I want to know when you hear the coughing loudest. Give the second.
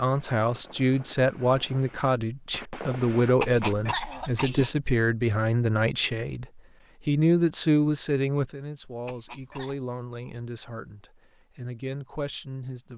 4 s.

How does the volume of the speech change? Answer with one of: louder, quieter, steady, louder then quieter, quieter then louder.
quieter.